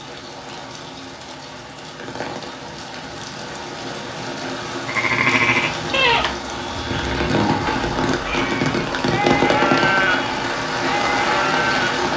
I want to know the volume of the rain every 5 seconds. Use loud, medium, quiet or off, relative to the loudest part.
medium, loud, loud.